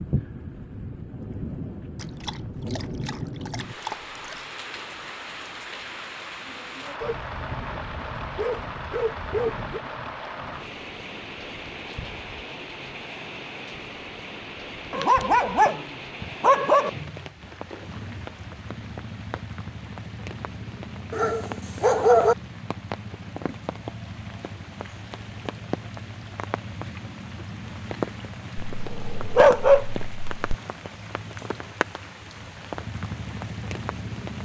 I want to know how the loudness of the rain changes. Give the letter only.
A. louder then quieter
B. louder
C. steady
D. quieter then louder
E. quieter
C.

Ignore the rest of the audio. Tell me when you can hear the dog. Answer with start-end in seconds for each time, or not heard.
1.9-4.5, 7.0-9.8, 14.9-16.9, 21.1-22.4, 28.8-30.6.